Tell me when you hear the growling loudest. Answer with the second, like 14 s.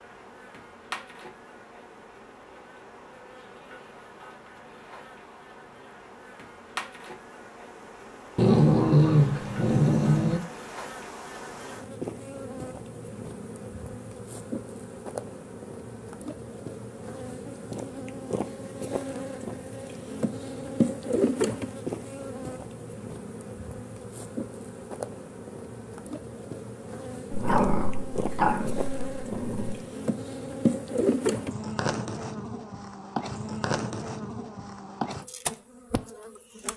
9 s.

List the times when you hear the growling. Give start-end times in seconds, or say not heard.
8.3-10.4, 27.3-29.8.